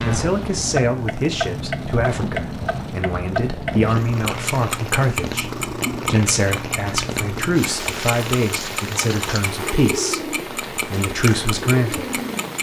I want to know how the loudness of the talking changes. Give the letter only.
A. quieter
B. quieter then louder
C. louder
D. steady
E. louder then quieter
D.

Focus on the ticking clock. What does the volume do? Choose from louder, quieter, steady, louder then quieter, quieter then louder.
quieter.